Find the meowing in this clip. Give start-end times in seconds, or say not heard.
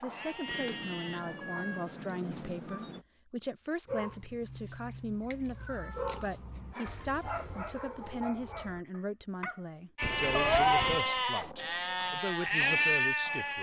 0.5-3.0, 5.5-7.2, 10.0-11.1.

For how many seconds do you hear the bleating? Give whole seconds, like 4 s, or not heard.
5 s.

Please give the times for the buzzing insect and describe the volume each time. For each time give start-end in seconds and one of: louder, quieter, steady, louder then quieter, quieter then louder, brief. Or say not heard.
not heard.